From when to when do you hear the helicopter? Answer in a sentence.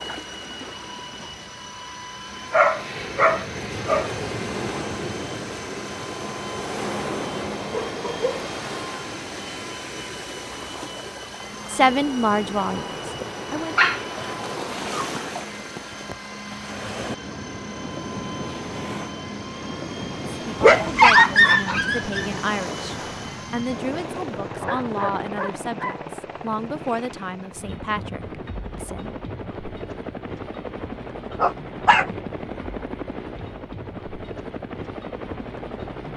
You can hear the helicopter from 0.0 to 36.1 s.